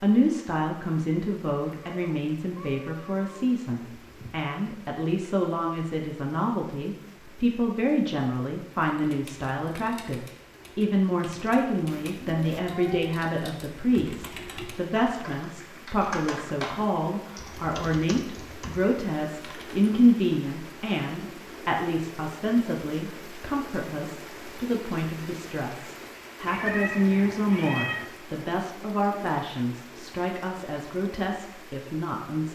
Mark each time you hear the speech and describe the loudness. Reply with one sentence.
The speech can be heard from 0.0 to 32.5 s, at a steady volume.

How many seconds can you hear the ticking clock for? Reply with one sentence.
The ticking clock can't be heard in this clip.